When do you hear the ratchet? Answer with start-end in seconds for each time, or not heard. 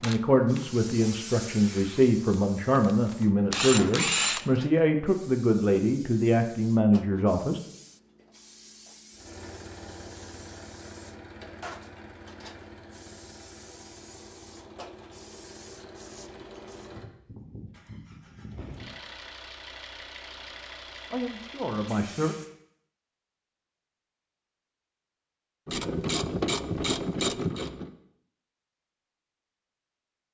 0.0-2.4, 3.5-4.5, 25.6-27.9.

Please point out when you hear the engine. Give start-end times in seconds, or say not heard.
9.1-22.5.